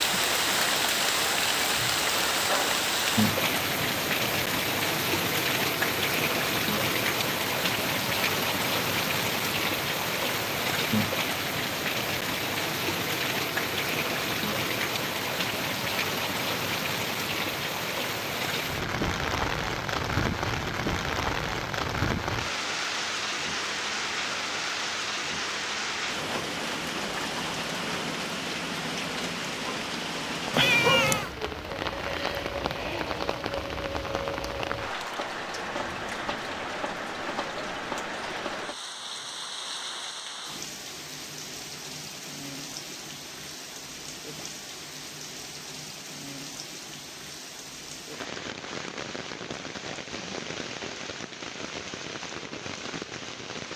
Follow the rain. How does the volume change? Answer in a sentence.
The volume of the rain goes down.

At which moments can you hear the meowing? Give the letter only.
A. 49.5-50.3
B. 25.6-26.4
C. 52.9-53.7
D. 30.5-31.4
D.